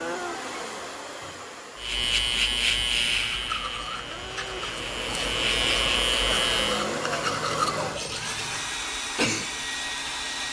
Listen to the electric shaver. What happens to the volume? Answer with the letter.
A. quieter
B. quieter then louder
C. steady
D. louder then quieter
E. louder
B.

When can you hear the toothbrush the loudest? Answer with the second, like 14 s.
8 s.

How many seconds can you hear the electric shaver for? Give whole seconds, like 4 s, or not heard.
5 s.